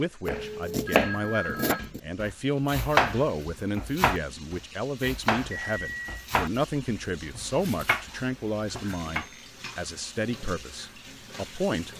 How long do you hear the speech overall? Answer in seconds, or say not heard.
12 s.